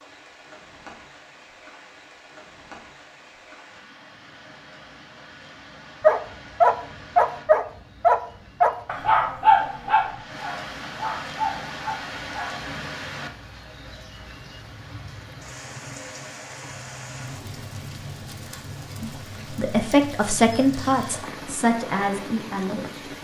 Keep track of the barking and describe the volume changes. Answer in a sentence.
The loudness of the barking goes down.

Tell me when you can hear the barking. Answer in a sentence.
You can hear the barking from 6.0 to 12.7 s.